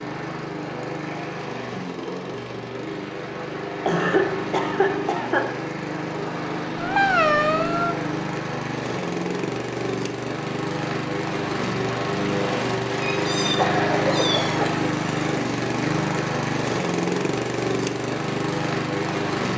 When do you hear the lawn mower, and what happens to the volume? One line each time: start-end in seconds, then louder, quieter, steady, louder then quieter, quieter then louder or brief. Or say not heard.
0.0-19.5 louder.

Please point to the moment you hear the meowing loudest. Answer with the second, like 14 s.
7 s.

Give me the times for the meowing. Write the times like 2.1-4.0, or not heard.
6.8-8.0, 12.9-14.6.